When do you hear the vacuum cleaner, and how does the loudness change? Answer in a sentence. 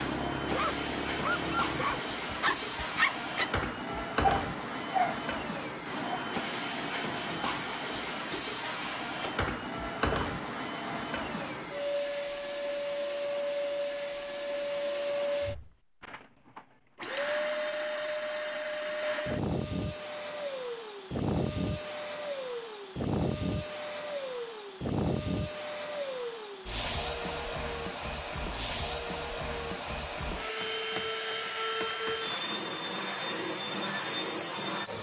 You can hear the vacuum cleaner from 0.0 to 34.9 s, at a steady volume.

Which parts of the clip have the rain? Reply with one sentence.
The rain can't be heard in this clip.